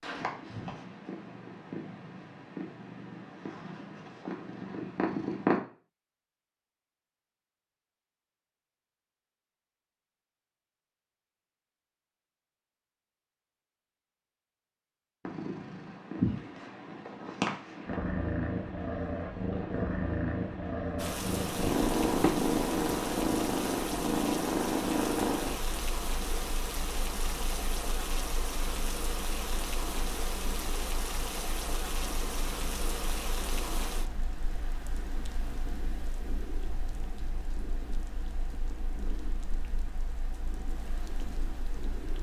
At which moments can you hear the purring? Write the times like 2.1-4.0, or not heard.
0.0-5.6, 15.2-42.1.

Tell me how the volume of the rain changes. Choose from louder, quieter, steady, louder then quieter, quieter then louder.
quieter.